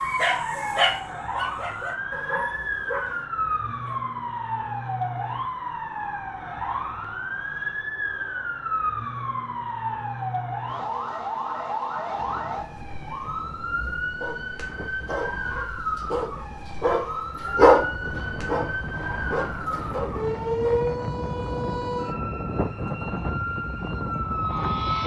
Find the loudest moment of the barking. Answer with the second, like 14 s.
18 s.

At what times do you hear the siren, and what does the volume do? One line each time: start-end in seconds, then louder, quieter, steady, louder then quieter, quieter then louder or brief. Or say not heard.
0.0-25.0 steady.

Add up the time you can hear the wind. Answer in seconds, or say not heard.
13 s.